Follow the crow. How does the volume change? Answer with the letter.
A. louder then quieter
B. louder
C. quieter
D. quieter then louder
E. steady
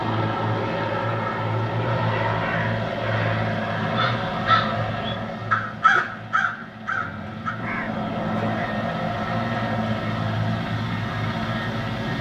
A.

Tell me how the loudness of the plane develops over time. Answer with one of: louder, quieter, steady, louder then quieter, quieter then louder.
quieter then louder.